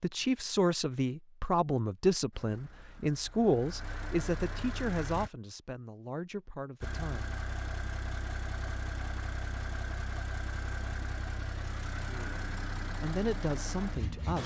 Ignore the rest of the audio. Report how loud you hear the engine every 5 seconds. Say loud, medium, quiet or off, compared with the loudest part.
medium, loud, loud.